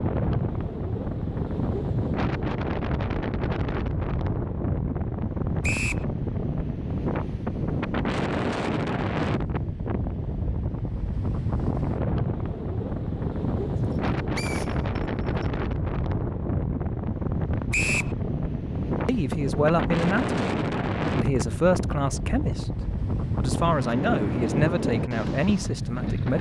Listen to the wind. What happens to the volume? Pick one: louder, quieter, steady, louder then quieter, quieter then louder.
steady.